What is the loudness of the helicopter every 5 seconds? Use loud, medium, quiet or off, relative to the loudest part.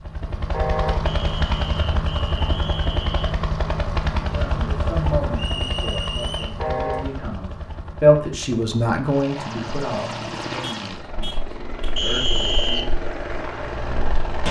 loud, medium, loud.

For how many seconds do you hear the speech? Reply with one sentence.
You can hear the speech for 9 seconds altogether.